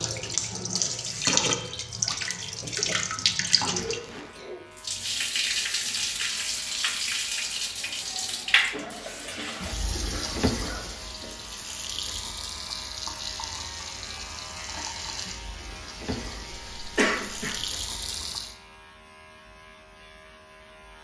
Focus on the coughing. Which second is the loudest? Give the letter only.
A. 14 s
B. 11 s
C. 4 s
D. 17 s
D.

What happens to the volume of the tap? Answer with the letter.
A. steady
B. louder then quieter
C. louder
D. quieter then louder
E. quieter
E.